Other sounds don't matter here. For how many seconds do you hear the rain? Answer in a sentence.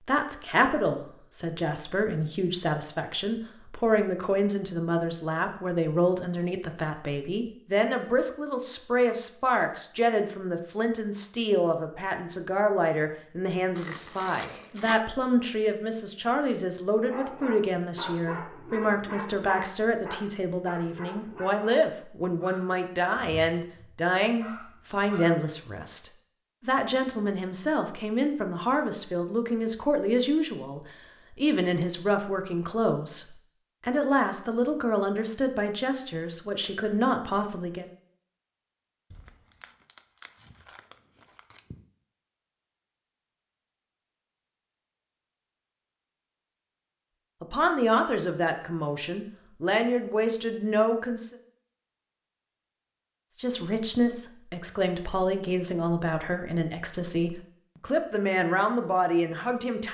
You can't hear the rain here.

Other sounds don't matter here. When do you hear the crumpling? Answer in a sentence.
You can hear the crumpling from 13.8 to 15.0 s and from 39.1 to 41.8 s.